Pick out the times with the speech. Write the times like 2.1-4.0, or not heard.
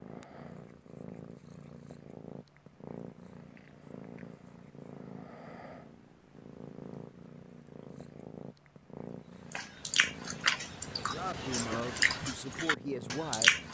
10.9-13.6.